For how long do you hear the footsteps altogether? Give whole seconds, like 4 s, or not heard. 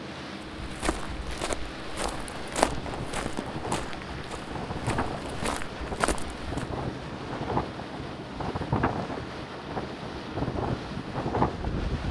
6 s.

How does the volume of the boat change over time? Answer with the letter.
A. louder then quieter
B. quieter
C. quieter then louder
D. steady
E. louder
D.